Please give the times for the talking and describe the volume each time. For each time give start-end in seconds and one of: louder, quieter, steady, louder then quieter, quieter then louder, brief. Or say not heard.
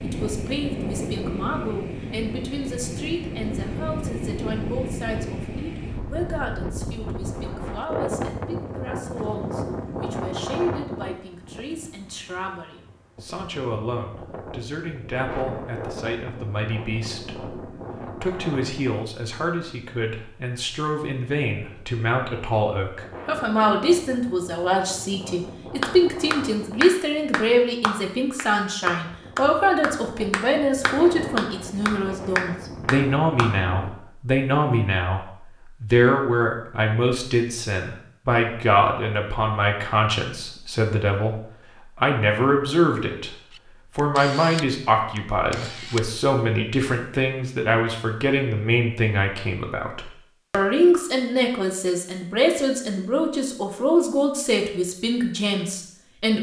0.0-43.4 louder
44.0-56.3 steady.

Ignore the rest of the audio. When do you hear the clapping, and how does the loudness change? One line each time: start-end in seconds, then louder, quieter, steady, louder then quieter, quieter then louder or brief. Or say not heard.
25.8-33.5 steady.